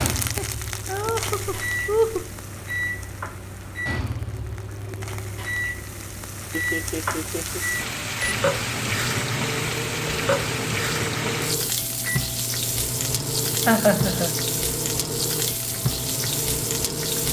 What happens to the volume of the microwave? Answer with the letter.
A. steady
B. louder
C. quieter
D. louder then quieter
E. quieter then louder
A.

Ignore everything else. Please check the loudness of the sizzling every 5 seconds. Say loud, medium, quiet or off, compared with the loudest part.
medium, loud, loud, loud.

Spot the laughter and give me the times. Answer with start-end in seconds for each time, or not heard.
0.3-2.3, 6.5-7.7, 13.7-14.3.